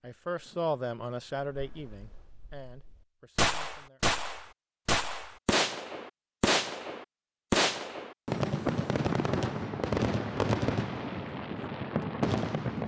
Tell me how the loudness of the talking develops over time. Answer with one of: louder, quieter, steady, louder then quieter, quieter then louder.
quieter.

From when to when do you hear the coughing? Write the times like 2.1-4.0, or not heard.
not heard.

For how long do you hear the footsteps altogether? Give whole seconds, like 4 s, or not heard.
not heard.